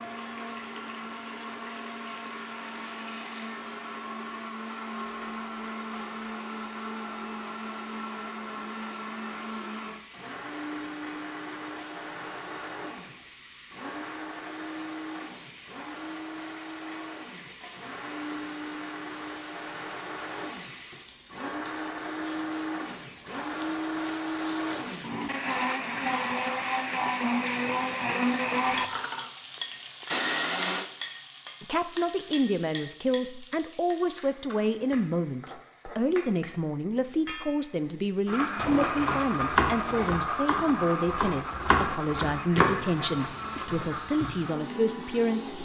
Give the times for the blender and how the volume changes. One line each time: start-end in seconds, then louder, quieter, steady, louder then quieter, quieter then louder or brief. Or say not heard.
0.0-30.9 louder
38.2-45.6 quieter.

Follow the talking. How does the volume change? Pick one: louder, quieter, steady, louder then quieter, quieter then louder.
steady.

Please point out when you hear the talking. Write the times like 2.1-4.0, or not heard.
31.6-45.6.